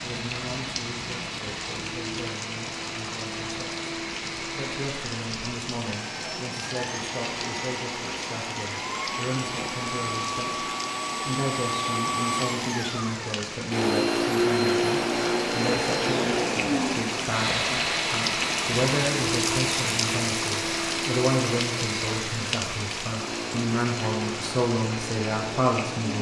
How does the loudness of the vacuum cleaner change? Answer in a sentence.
The loudness of the vacuum cleaner goes up, then down.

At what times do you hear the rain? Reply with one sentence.
You can hear the rain from 0.0 to 26.1 s.